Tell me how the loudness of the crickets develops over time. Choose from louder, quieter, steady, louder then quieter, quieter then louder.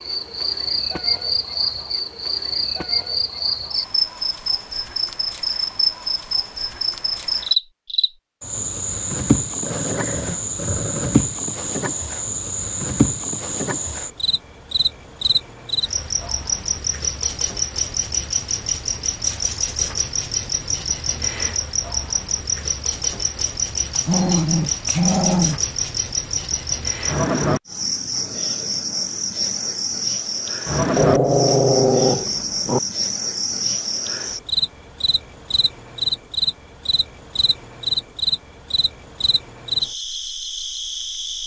steady.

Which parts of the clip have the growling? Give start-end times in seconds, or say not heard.
9.6-11.3, 23.9-25.6, 30.9-32.8.